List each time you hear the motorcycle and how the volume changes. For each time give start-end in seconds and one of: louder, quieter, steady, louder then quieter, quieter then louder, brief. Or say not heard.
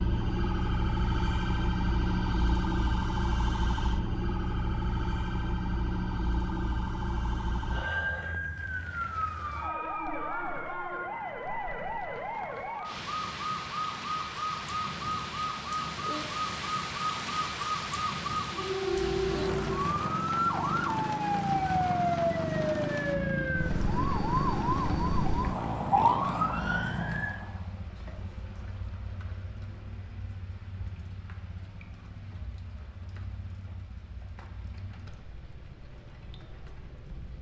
18.9-37.3 quieter.